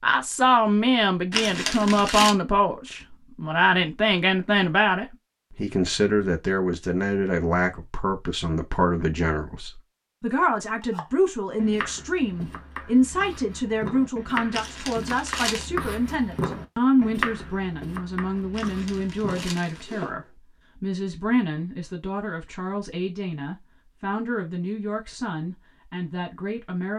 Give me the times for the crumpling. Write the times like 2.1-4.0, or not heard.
1.3-2.4, 14.5-15.7, 18.5-20.1.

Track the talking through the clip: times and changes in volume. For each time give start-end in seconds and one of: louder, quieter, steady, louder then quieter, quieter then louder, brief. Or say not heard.
0.0-26.9 quieter.